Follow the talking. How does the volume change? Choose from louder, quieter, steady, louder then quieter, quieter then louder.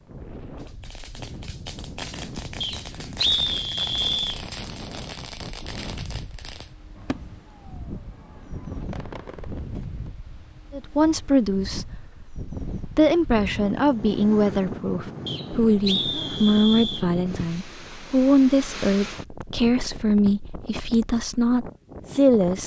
steady.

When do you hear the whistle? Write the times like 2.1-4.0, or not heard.
2.6-4.4, 15.2-17.1.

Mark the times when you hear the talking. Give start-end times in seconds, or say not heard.
10.7-22.6.